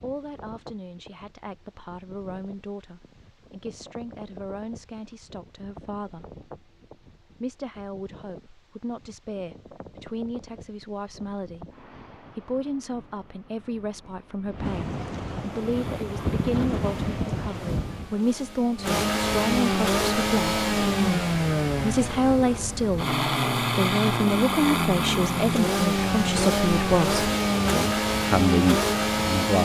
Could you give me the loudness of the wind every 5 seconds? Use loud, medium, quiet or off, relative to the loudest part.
quiet, quiet, medium, loud, off, off.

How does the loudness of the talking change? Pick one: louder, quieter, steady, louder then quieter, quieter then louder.
louder.